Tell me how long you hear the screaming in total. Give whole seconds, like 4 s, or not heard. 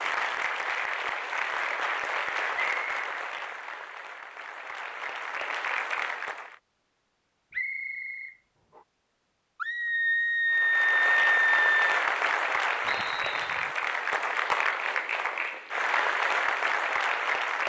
2 s.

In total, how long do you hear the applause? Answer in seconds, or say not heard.
14 s.